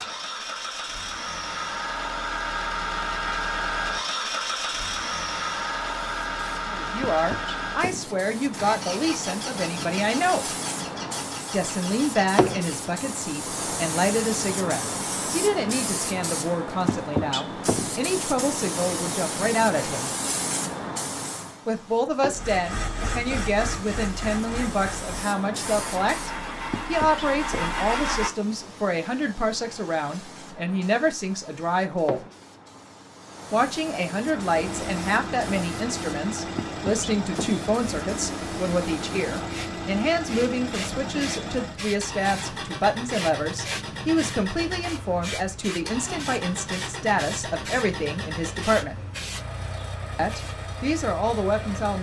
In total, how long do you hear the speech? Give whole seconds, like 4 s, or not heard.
40 s.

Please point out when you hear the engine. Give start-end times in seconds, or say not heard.
0.0-12.9, 22.2-28.3, 34.1-51.9.